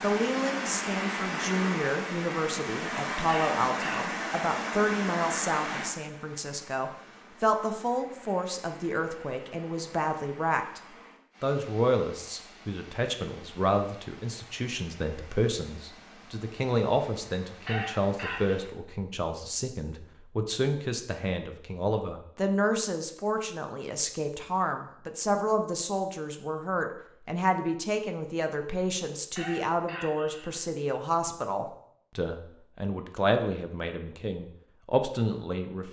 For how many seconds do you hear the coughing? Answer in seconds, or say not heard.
3 s.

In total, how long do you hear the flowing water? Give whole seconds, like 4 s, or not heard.
19 s.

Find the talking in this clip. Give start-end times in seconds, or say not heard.
0.0-10.8, 11.4-35.8.